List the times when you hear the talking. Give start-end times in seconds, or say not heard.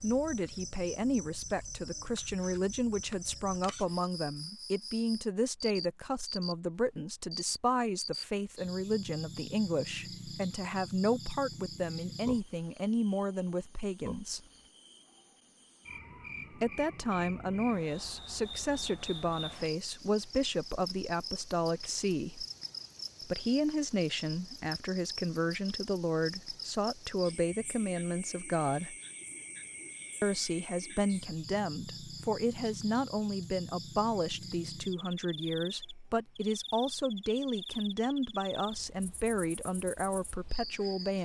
0.0-14.4, 16.5-22.4, 23.2-28.9, 30.2-41.1.